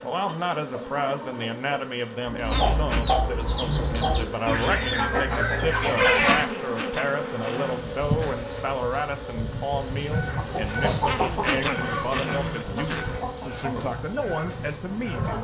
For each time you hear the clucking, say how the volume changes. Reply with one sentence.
You can hear the clucking from 0.0 to 6.5 s, getting louder; and from 9.9 to 15.3 s, getting quieter.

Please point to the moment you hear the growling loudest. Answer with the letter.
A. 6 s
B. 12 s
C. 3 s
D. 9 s
B.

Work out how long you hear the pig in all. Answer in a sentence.
The pig can't be heard in this clip.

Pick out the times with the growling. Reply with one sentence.
You can hear the growling from 2.5 to 3.2 s, from 6.3 to 8.3 s and from 11.1 to 13.1 s.